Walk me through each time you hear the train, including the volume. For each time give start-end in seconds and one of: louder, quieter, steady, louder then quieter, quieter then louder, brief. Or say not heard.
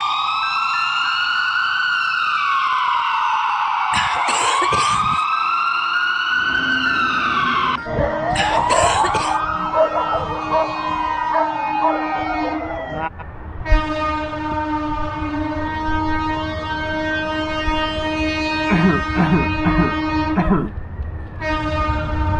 6.3-22.3 louder.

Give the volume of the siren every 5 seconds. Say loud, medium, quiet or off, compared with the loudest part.
loud, loud, medium, quiet, quiet.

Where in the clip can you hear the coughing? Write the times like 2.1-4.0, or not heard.
3.9-5.2, 8.3-9.4, 18.6-20.7.